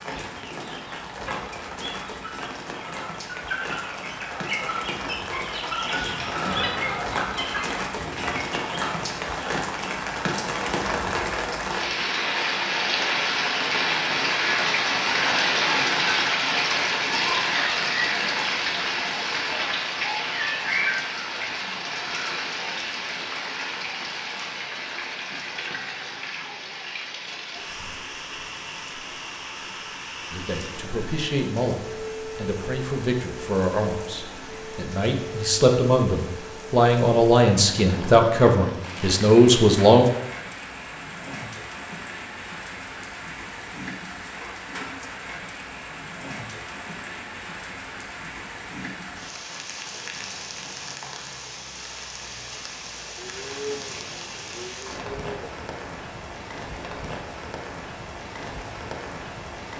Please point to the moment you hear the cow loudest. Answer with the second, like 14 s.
54 s.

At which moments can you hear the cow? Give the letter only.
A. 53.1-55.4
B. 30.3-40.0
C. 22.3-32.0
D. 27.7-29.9
A.